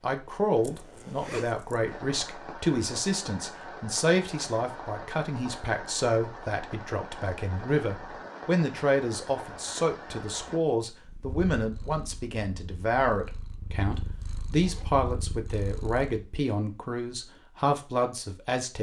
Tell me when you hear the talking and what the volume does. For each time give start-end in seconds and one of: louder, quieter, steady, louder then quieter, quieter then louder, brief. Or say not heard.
0.0-18.7 steady.